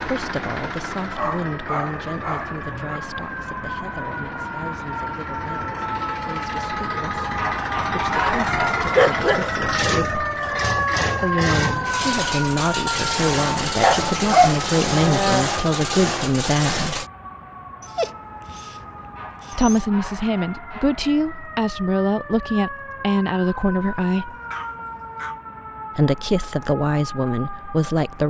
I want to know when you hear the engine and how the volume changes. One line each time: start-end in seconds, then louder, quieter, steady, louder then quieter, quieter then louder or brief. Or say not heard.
0.0-17.1 louder.